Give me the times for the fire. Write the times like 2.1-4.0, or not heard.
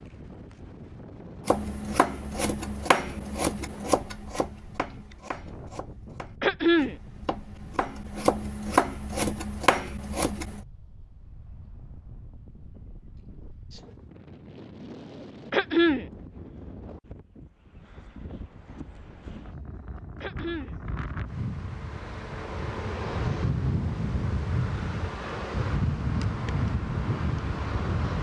not heard.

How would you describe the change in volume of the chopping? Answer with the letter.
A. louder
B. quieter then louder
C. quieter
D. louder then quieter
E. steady
B.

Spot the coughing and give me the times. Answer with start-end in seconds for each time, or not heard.
6.4-7.0, 15.5-16.1, 20.2-20.8.